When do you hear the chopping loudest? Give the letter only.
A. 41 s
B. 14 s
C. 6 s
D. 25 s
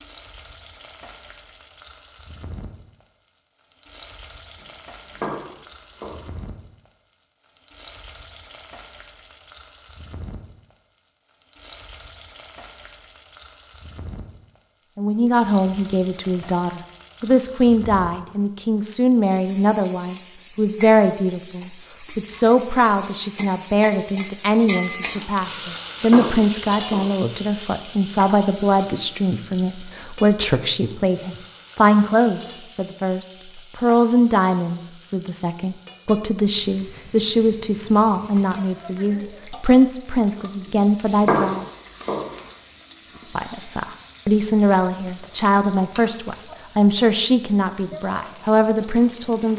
A.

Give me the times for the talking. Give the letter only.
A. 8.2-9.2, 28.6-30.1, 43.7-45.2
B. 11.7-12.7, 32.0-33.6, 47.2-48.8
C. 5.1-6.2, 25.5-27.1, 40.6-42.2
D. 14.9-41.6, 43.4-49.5
D.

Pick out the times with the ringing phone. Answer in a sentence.
You can't hear the ringing phone here.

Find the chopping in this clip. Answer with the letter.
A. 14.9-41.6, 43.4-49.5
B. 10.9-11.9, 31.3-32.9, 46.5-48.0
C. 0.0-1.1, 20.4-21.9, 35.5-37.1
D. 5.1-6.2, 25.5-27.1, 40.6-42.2
D.